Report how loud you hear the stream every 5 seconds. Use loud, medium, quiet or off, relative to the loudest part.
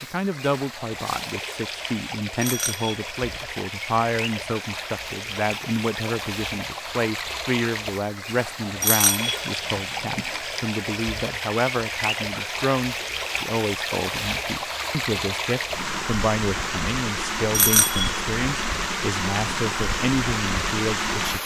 medium, medium, loud, loud, loud.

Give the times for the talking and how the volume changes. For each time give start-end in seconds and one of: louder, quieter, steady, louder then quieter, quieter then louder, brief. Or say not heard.
0.0-21.4 steady.